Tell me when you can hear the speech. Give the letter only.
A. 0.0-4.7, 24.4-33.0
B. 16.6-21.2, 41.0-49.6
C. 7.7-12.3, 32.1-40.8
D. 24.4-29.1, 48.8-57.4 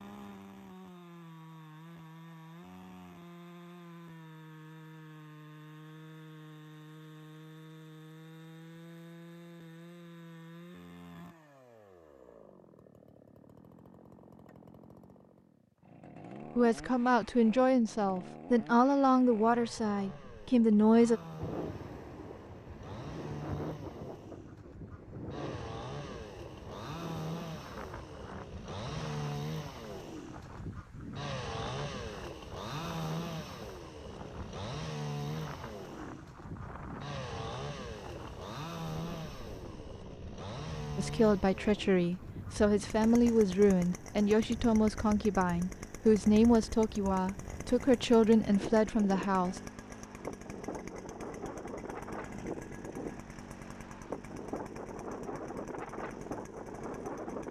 B.